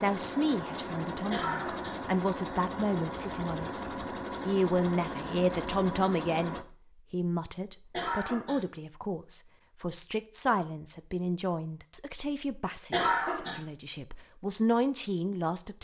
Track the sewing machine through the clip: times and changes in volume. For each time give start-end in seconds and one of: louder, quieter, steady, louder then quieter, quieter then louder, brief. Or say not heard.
0.0-6.7 steady.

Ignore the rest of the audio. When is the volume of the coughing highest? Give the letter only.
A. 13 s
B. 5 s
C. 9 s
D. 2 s
A.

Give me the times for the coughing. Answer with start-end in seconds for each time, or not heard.
1.3-2.0, 7.9-8.7, 12.9-13.6.